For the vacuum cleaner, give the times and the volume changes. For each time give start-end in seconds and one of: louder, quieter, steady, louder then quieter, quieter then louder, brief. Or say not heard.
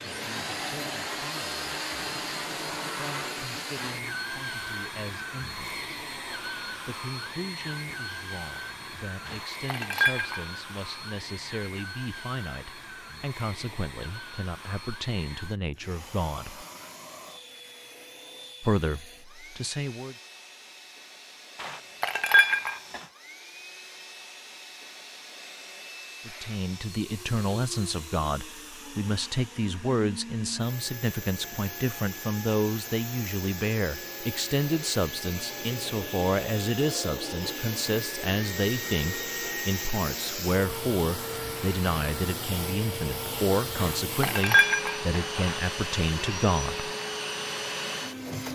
0.0-48.5 quieter then louder.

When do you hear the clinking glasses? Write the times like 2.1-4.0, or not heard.
9.2-10.4, 21.6-23.0, 43.8-45.6.